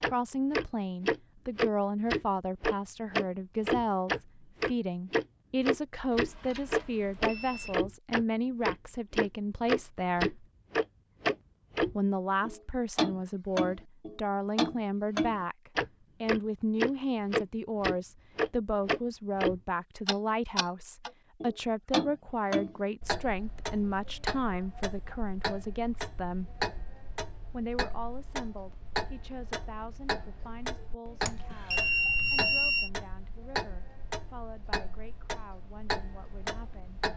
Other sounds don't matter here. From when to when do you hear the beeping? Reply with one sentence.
The beeping can be heard from 6.1 to 7.8 s and from 31.2 to 32.9 s.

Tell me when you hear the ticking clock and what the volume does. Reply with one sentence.
You can hear the ticking clock from 0.0 to 37.1 s, getting quieter.